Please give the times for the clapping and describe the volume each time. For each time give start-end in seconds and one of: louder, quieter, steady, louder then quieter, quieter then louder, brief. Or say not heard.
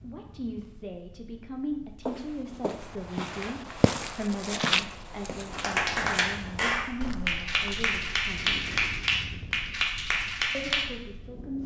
5.5-10.8 steady.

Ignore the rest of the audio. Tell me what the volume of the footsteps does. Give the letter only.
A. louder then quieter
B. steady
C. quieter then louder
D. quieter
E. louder
A.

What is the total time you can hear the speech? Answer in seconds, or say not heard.
10 s.